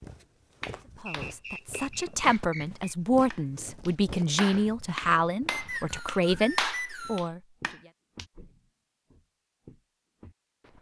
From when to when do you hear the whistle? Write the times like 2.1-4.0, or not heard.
1.1-2.9, 5.5-7.3.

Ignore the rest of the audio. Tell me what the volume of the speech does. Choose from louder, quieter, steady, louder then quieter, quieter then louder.
steady.